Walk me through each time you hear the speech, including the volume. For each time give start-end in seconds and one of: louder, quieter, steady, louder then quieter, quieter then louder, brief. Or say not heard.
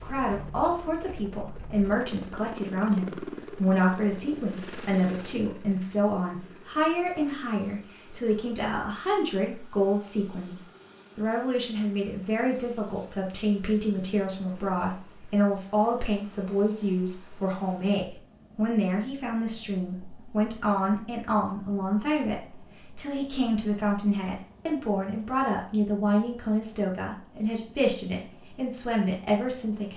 0.0-29.9 steady.